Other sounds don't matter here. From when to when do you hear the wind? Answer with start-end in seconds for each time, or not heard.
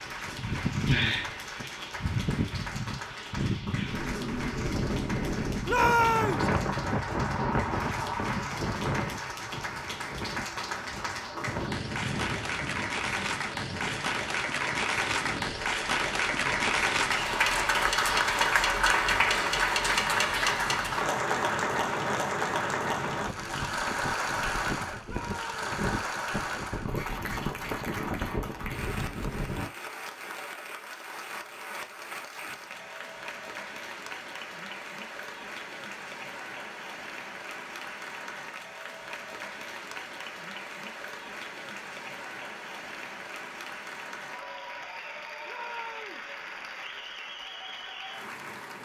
0.0-29.7.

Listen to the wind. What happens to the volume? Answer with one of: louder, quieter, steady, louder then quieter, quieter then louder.
quieter then louder.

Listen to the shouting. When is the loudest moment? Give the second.
6 s.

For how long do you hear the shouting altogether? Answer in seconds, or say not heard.
2 s.